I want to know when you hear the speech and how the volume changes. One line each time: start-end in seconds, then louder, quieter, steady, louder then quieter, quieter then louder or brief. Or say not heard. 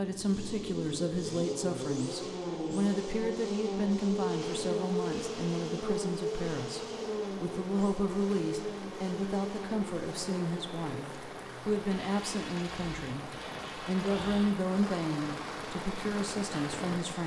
0.0-17.2 steady.